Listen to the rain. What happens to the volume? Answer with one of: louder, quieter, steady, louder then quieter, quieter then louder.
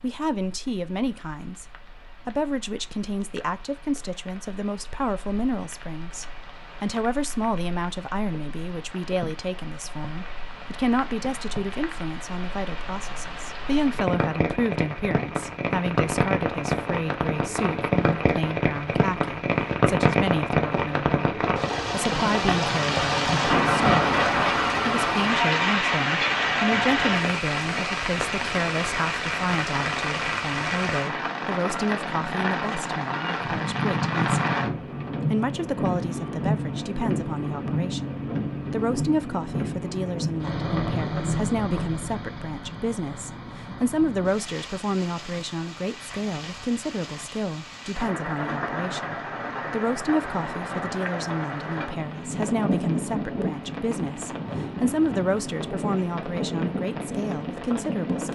louder then quieter.